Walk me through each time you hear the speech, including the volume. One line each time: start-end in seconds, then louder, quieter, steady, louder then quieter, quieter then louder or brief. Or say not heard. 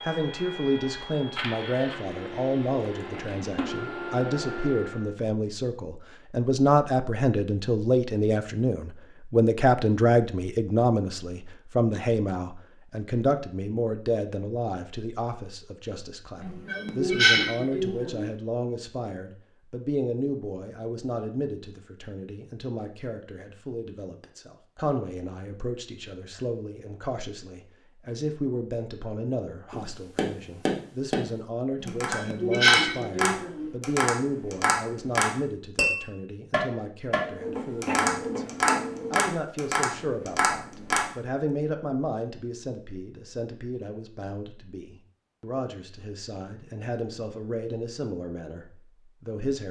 0.0-49.6 quieter.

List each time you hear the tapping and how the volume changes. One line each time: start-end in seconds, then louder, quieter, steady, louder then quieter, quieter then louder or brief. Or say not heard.
29.7-41.1 steady.